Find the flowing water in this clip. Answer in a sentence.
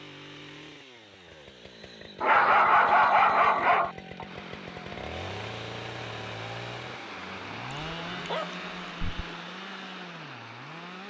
The flowing water can be heard from 4.2 to 11.0 s.